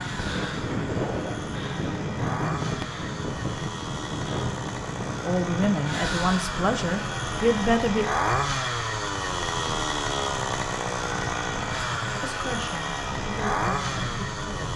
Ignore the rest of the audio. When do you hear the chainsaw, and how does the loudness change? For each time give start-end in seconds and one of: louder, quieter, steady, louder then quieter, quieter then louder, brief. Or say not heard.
0.0-14.7 louder.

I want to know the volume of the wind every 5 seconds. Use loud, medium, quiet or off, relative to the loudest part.
loud, medium, medium.